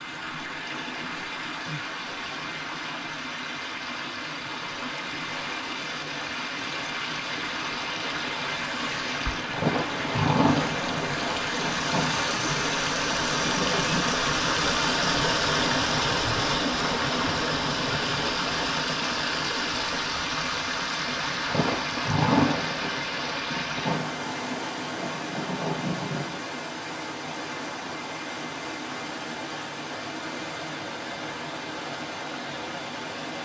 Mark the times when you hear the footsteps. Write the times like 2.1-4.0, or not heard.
not heard.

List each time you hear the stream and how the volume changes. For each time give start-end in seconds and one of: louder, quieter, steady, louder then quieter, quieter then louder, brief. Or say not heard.
0.0-33.3 louder then quieter.